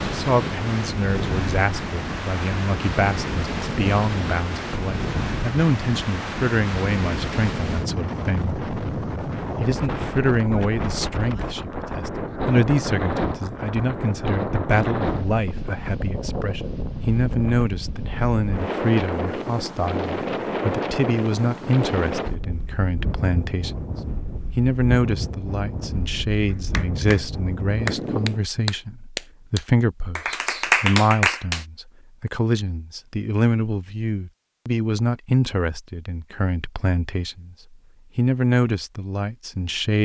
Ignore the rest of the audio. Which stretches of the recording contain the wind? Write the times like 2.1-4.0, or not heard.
0.0-28.4.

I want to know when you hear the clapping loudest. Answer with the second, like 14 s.
31 s.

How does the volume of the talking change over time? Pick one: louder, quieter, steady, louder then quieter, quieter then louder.
steady.